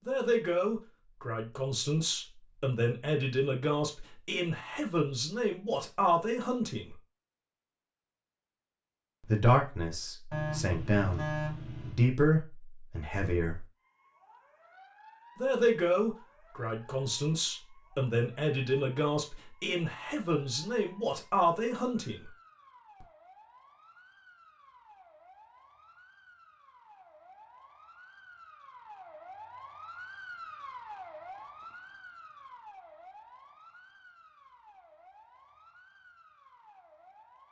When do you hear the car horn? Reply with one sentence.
The car horn can be heard from 10.3 to 12.0 s.